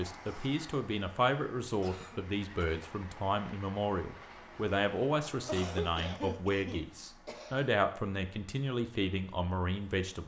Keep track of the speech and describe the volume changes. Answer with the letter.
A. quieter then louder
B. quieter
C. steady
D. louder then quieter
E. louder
C.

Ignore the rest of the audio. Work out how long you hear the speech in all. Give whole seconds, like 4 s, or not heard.
10 s.